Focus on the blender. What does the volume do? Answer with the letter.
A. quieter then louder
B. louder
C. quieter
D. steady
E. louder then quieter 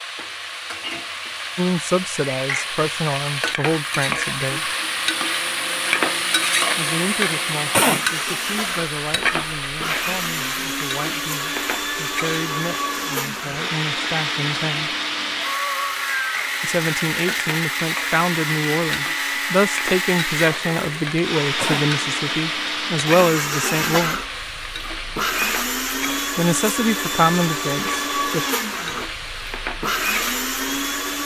B.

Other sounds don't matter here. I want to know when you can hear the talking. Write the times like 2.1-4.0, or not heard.
1.6-4.7, 6.8-14.9, 16.6-24.2, 26.4-28.4.